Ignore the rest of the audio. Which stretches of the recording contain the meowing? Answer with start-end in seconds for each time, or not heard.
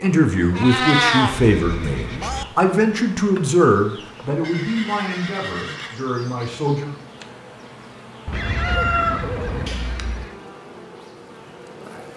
0.5-1.4, 8.2-10.2.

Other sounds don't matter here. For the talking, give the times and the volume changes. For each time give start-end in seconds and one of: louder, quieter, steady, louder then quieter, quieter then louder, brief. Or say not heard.
0.0-7.0 quieter.